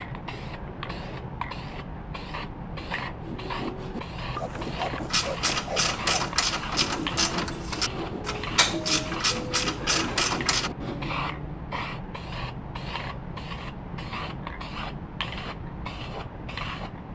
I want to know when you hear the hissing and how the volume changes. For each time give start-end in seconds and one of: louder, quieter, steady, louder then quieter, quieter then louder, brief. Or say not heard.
0.0-17.0 steady.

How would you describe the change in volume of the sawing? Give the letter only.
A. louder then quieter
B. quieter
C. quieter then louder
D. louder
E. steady
E.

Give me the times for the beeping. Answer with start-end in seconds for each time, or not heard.
not heard.